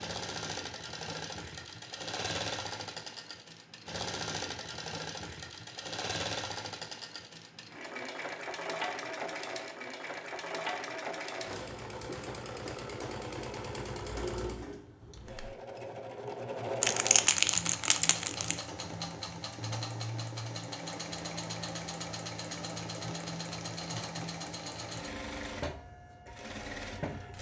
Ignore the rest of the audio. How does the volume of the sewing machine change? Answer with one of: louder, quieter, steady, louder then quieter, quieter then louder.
steady.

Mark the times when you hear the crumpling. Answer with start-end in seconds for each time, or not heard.
16.8-18.6.